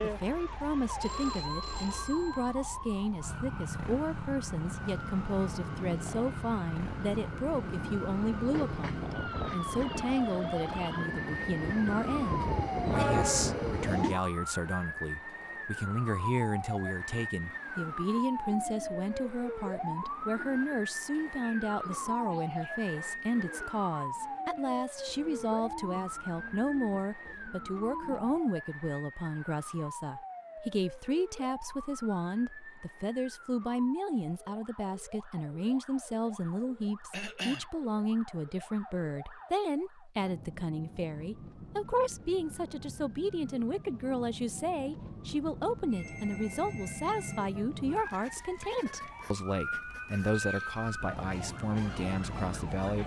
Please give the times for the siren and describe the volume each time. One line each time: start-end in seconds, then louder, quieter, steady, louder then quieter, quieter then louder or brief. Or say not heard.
0.0-53.0 quieter then louder.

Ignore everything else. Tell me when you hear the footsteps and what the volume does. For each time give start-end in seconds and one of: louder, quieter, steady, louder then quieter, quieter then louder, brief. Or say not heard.
not heard.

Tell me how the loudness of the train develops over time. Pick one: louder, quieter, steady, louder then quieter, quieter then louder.
louder.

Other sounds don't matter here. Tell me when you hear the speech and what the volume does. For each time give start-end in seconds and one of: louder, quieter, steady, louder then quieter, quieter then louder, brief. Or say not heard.
0.0-53.0 steady.